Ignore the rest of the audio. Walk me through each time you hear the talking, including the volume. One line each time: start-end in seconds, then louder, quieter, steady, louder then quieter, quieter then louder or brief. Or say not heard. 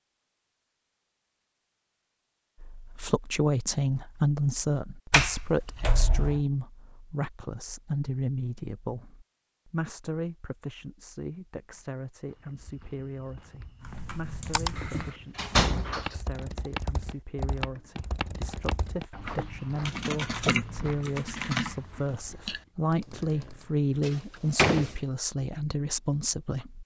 2.6-26.8 quieter then louder.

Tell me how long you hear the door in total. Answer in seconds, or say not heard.
4 s.